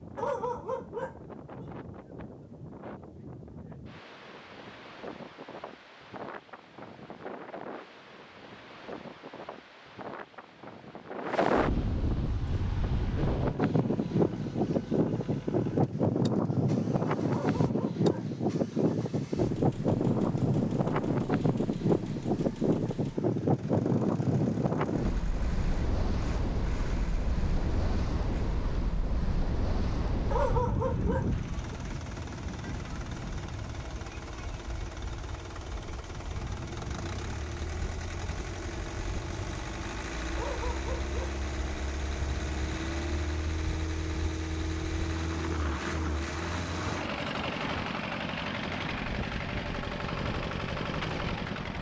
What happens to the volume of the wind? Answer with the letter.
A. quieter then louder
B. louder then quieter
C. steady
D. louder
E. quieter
B.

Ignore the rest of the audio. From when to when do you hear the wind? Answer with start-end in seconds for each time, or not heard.
0.0-51.7.